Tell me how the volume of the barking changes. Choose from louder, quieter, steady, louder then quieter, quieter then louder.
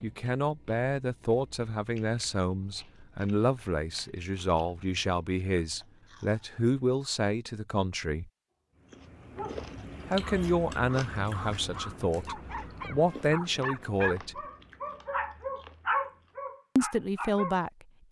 louder.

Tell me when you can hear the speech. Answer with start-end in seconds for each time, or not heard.
0.0-8.3, 10.1-14.4, 16.8-18.0.